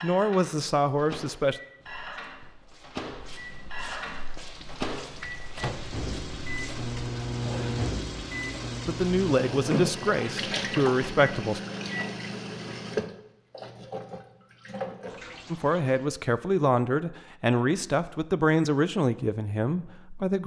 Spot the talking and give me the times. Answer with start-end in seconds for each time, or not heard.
0.0-1.6, 8.8-11.6, 15.5-20.4.